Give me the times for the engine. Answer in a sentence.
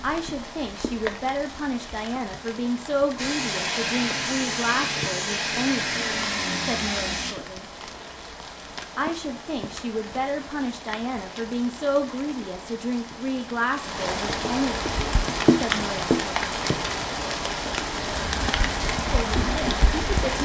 You can hear the engine from 3.1 to 7.3 s and from 18.1 to 20.4 s.